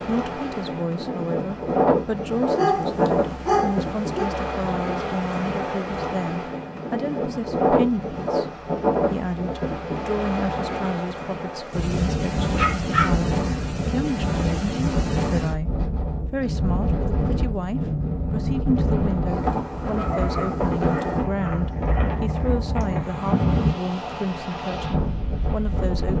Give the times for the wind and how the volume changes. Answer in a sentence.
You can hear the wind from 0.0 to 26.1 s, at a steady volume.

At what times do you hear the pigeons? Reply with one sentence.
The pigeons can't be heard in this clip.